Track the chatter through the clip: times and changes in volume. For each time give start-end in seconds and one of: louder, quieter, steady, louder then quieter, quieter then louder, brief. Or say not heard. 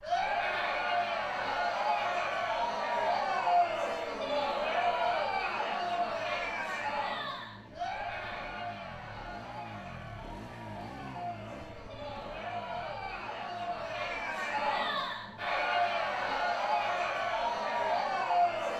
0.0-18.7 quieter then louder.